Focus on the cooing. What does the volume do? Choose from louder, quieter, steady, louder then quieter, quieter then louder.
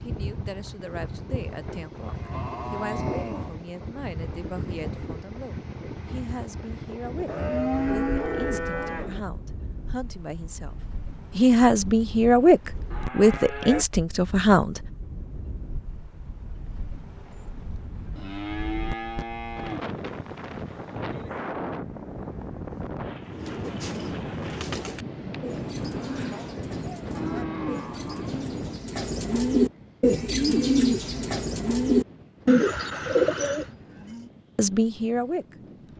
louder.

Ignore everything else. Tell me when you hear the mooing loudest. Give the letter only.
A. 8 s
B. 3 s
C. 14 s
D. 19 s
A.